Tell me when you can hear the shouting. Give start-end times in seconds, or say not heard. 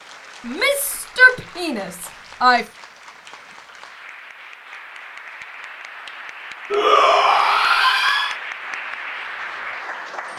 0.5-2.6, 6.7-8.3.